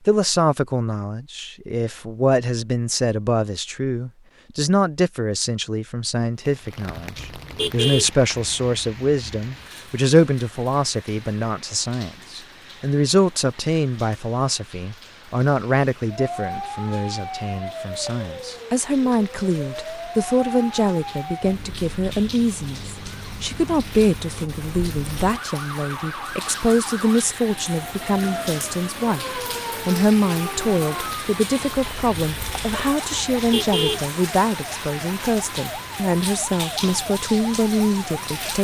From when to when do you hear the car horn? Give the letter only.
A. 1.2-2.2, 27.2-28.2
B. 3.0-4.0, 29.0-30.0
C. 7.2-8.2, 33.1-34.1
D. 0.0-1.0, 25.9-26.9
C.